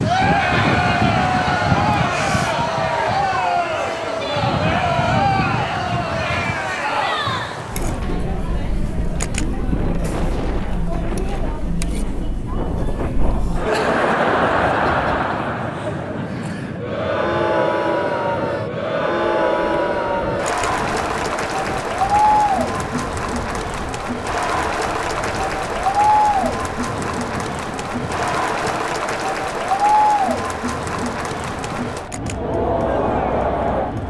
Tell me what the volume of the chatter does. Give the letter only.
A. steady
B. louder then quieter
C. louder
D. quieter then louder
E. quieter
D.